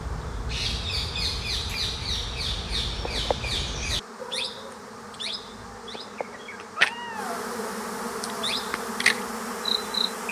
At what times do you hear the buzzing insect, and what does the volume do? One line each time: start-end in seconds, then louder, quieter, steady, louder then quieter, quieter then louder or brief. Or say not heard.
0.0-10.2 louder.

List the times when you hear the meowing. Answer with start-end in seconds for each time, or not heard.
3.0-3.5, 5.9-7.7.